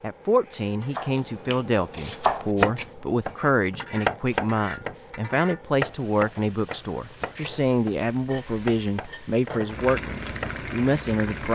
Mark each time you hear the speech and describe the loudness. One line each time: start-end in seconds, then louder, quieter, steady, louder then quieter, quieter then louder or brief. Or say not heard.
0.0-11.4 steady.